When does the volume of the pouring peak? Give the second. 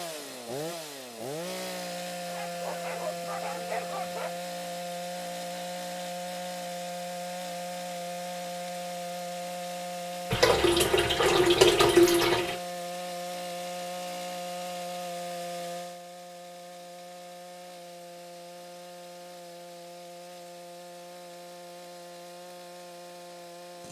12 s.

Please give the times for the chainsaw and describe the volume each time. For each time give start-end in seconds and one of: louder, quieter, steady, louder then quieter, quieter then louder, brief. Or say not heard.
0.0-23.8 quieter.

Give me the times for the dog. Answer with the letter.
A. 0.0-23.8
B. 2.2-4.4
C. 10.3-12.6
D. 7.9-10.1
B.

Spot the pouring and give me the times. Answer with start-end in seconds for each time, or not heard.
10.3-12.6.